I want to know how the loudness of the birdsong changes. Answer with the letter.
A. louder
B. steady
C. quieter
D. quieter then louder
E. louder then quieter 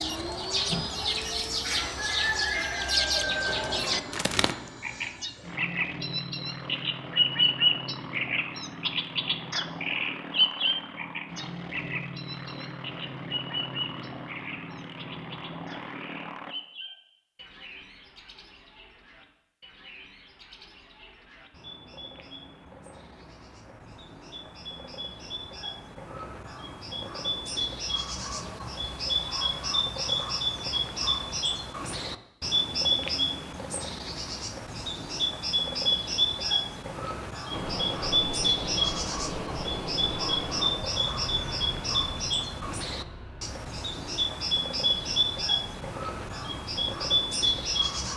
D.